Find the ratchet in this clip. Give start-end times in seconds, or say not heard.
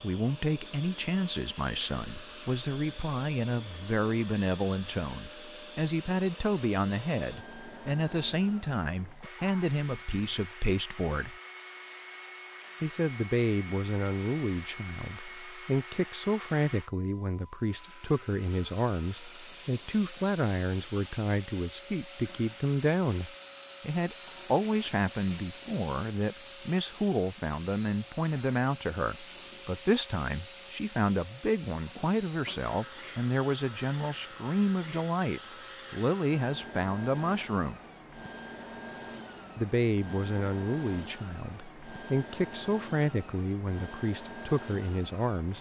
not heard.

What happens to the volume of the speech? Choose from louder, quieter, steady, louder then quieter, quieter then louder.
steady.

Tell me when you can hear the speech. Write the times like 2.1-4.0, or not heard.
0.0-11.3, 12.8-37.8, 39.5-45.5.